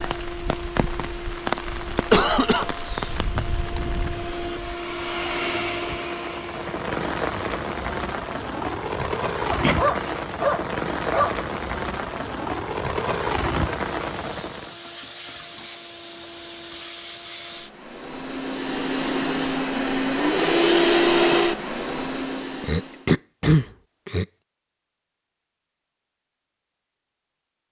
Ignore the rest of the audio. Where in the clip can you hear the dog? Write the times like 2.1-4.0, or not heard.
9.5-11.3.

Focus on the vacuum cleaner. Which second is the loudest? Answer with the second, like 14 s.
21 s.